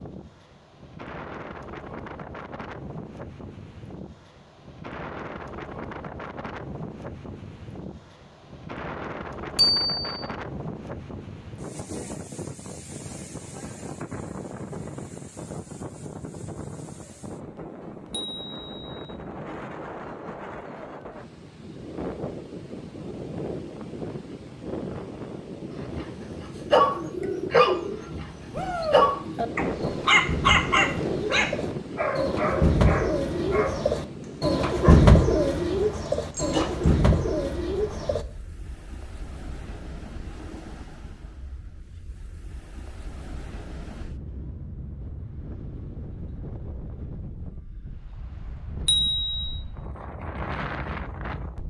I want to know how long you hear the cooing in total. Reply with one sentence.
The cooing can be heard for 12 seconds in total.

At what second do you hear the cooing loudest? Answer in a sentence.
The loudest moment of the cooing is at 35 seconds.